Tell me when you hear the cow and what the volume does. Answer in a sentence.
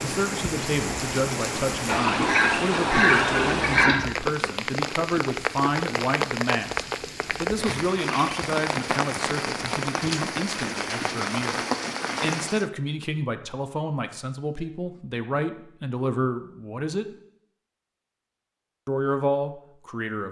The cow can't be heard in this clip.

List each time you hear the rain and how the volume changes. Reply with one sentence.
You can hear the rain from 0.0 to 12.7 s, at a steady volume.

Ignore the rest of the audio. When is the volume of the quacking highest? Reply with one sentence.
The volume of the quacking peaks at 3 seconds.